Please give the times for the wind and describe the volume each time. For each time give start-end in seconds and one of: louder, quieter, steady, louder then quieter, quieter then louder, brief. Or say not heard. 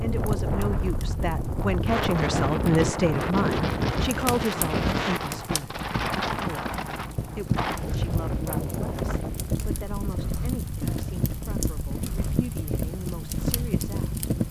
0.0-14.3 quieter.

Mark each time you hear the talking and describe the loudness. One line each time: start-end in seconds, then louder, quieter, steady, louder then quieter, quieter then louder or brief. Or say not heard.
0.0-14.2 quieter.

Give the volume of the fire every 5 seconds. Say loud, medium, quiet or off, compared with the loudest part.
medium, loud, loud.